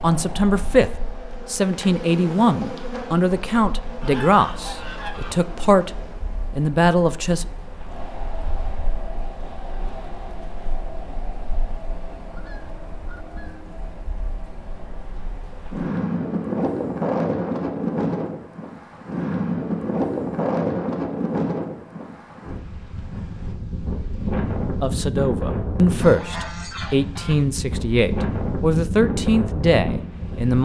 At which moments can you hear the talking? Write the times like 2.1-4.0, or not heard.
0.0-5.9, 6.5-7.5, 24.8-30.6.